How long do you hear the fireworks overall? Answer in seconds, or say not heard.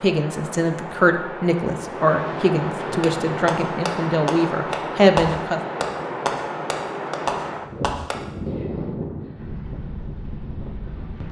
5 s.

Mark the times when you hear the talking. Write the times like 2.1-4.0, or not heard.
0.0-5.6.